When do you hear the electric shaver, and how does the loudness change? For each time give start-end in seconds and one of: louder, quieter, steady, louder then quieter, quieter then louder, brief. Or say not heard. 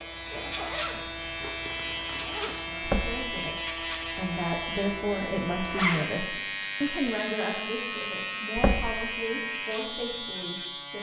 0.0-10.9 steady.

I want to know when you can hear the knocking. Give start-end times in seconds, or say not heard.
2.8-3.3, 8.6-9.2.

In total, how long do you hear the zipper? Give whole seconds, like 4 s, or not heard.
3 s.